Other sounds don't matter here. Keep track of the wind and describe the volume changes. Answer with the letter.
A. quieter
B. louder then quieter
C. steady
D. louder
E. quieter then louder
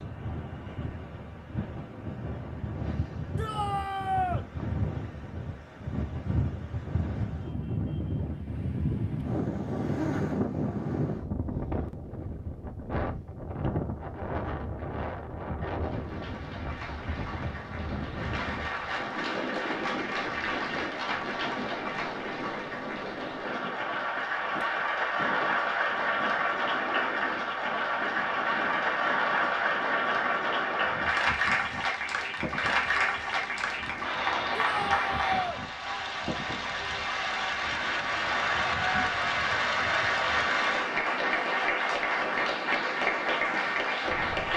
A.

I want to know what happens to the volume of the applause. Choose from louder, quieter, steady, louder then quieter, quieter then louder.
louder.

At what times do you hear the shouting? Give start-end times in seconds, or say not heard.
3.4-4.5, 34.5-35.6.